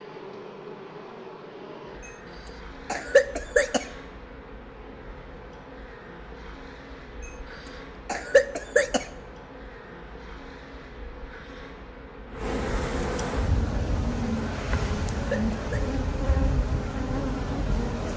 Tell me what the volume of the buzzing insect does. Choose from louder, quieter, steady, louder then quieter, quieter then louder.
louder.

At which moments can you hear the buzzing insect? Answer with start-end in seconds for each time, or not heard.
0.0-18.1.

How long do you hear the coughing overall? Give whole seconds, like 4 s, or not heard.
3 s.